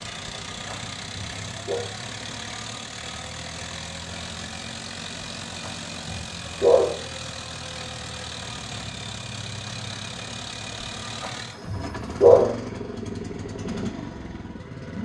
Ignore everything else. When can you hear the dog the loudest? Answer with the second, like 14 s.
12 s.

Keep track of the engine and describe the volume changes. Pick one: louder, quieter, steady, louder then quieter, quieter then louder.
steady.